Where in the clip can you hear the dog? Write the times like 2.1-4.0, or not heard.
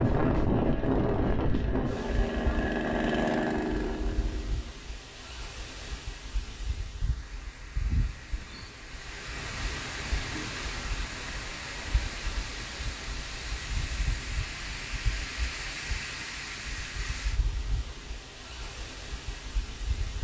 not heard.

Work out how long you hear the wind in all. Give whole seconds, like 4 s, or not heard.
20 s.